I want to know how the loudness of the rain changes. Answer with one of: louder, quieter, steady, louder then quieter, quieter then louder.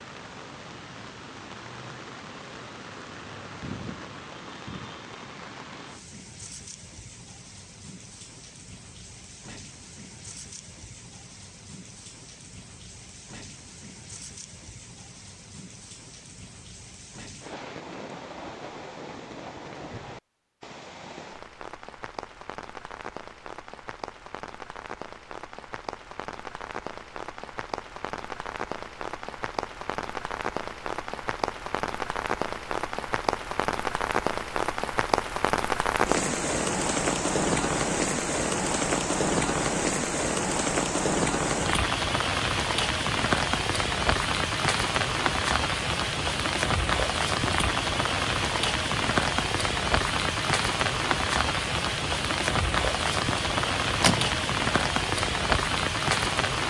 louder.